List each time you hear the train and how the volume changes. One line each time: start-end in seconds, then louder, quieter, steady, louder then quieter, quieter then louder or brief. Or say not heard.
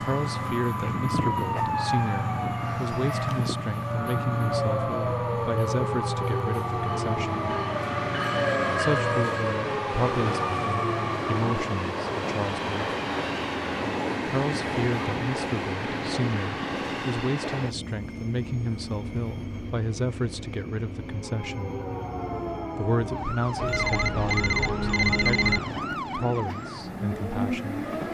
0.0-28.0 quieter.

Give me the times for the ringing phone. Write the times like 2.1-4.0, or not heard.
8.2-9.6, 23.6-25.6.